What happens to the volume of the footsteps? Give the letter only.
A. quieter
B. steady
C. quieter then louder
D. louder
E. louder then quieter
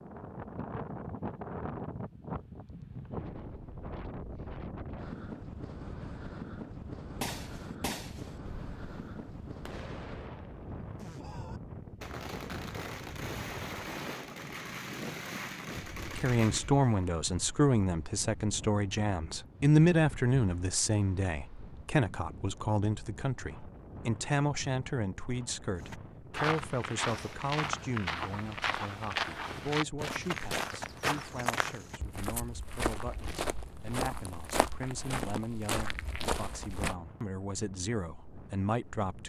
B.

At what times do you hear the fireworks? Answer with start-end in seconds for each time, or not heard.
7.2-16.9.